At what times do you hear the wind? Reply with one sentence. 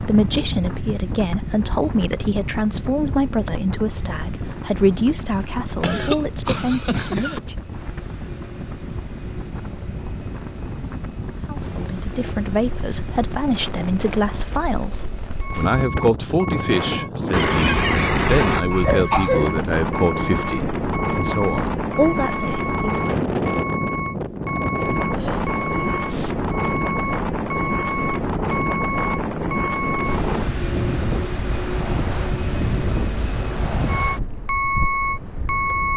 The wind can be heard from 0.0 to 35.9 s.